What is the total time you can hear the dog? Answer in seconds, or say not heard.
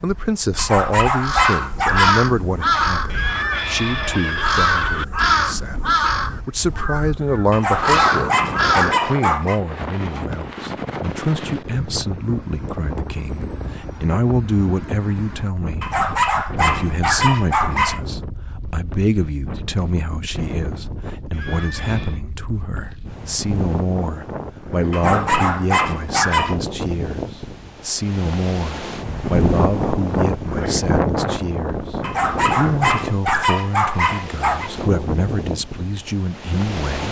10 s.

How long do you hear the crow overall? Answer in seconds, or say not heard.
8 s.